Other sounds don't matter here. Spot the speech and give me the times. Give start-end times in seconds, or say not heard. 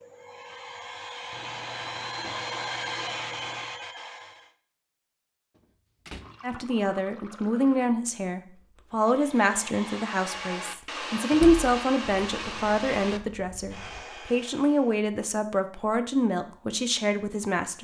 6.4-17.7.